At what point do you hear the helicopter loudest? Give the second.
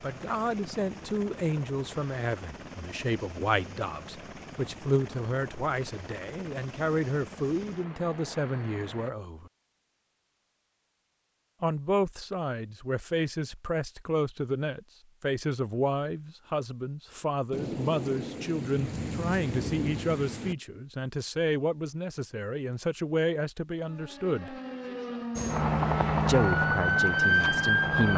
26 s.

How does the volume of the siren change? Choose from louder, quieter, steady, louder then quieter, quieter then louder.
louder.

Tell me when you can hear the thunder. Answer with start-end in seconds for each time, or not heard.
17.5-20.6.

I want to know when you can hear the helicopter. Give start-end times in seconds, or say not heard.
0.0-9.1, 25.4-28.1.